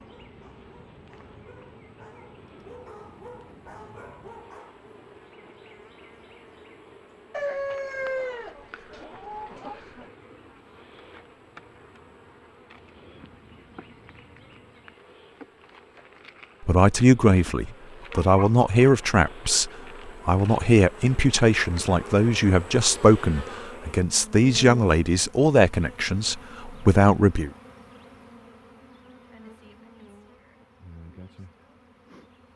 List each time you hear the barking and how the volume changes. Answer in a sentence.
You can hear the barking from 0.0 to 4.8 s, getting louder.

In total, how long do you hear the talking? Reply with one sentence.
The talking can be heard for 11 seconds in total.